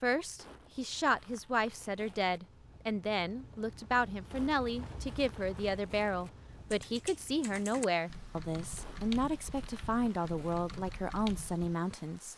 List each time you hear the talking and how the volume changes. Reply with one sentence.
The talking can be heard from 0.0 to 12.3 s, at a steady volume.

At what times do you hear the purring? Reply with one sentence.
The purring can't be heard in this clip.